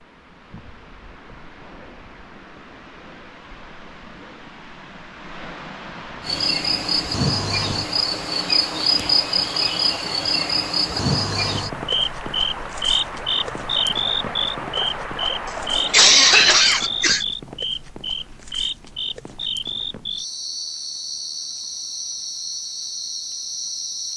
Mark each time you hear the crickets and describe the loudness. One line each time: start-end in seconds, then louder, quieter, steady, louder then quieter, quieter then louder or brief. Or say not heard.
6.2-24.1 quieter.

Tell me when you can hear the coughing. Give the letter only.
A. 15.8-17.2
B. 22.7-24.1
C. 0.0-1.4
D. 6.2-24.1
A.